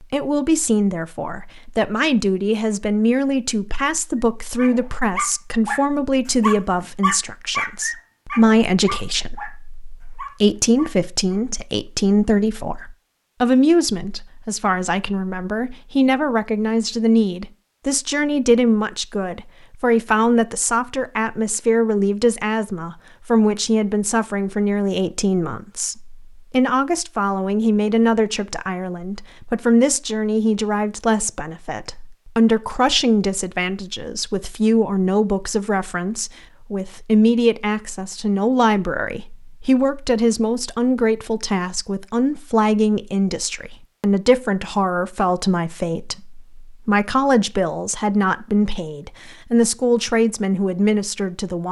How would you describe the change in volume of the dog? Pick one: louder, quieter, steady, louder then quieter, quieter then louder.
quieter.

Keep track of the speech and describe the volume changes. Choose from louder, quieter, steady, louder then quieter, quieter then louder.
steady.